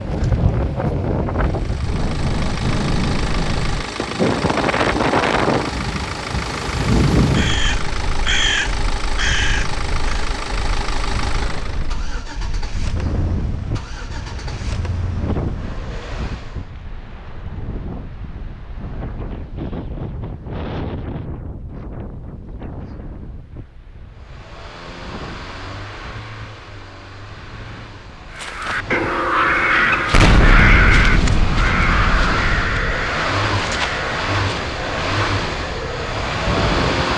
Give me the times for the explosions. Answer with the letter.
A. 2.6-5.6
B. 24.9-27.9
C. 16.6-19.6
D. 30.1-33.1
D.